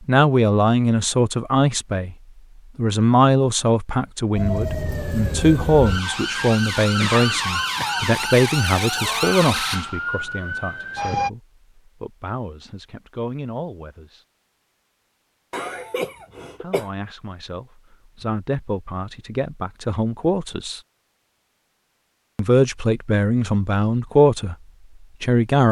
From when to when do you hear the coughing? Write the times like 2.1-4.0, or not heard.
7.0-8.2, 15.5-16.9.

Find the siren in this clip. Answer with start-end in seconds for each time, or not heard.
4.3-11.3.